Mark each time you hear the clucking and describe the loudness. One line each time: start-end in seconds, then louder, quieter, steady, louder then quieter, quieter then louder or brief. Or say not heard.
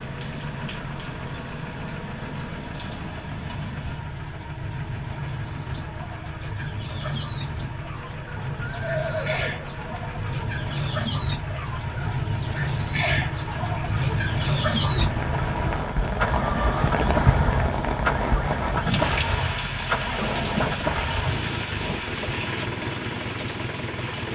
5.8-16.9 louder.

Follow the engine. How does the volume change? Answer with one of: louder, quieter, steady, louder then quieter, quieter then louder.
louder.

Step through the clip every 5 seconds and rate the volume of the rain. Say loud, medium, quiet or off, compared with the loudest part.
medium, medium, loud, loud, medium.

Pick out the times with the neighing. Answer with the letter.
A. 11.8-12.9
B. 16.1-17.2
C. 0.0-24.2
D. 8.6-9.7
D.